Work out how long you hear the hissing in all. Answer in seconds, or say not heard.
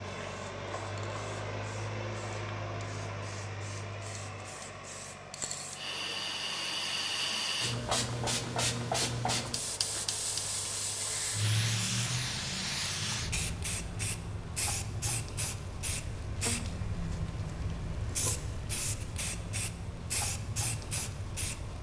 22 s.